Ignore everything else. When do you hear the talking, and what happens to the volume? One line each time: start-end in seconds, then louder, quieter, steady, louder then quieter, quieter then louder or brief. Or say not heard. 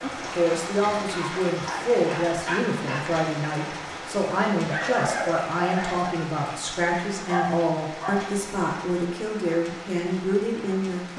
0.0-11.1 steady.